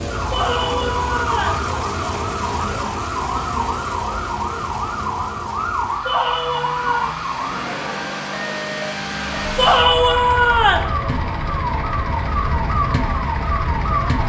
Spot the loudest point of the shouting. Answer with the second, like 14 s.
10 s.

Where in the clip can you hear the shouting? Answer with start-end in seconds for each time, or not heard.
0.3-1.6, 6.0-7.2, 9.6-10.9.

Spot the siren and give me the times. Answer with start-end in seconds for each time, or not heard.
0.0-14.2.